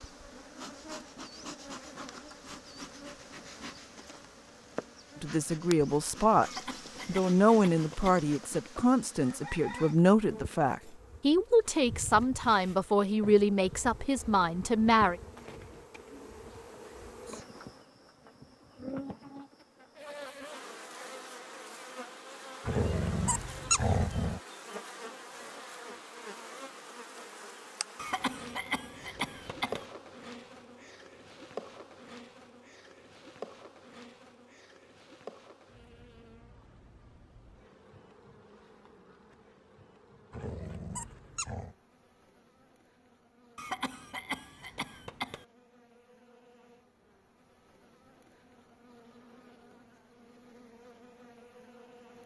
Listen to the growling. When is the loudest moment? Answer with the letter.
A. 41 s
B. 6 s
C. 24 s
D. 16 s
C.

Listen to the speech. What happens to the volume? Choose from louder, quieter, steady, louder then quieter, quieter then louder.
steady.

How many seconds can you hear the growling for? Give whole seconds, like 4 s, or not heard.
3 s.